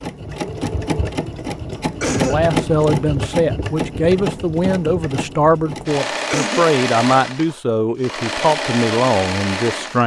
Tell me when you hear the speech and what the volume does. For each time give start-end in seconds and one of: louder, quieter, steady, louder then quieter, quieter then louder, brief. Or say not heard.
2.0-10.0 steady.